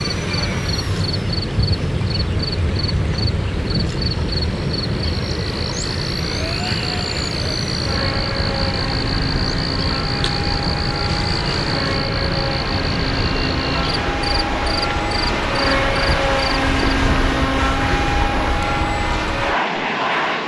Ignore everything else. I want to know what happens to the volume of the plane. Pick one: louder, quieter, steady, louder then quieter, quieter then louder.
louder.